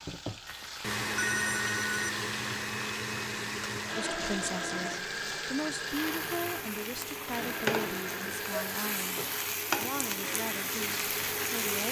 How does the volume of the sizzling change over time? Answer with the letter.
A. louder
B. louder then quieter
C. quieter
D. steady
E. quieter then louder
A.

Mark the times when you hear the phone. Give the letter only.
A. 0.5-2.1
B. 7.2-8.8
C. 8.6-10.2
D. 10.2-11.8
A.